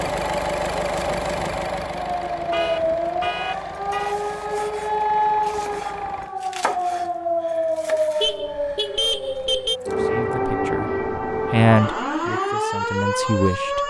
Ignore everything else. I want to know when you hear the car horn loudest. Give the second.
9 s.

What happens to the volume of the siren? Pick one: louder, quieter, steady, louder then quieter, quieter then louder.
steady.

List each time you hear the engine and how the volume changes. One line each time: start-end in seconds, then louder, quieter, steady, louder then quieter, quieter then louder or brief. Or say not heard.
0.0-6.3 quieter.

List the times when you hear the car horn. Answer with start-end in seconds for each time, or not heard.
2.3-4.2, 8.2-9.8.